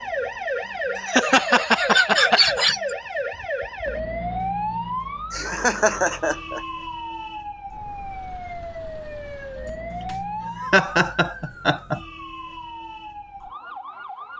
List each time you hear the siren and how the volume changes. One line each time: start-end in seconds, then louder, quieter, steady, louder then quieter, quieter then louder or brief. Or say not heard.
0.0-14.3 quieter.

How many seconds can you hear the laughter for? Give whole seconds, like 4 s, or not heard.
6 s.